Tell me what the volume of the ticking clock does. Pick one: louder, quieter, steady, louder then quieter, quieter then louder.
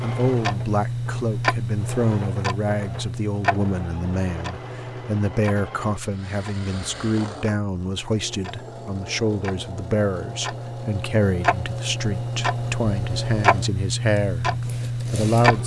quieter then louder.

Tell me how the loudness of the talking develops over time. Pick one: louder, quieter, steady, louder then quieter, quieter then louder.
steady.